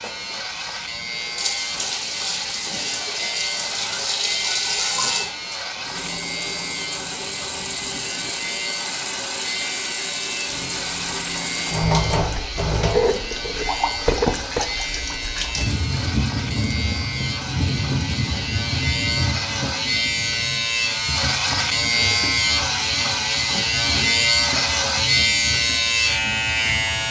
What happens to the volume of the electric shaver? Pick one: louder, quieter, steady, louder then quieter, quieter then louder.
louder.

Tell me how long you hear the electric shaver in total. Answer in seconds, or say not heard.
27 s.